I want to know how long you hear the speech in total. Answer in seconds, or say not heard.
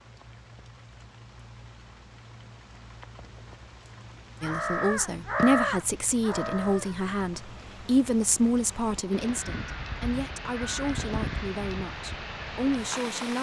9 s.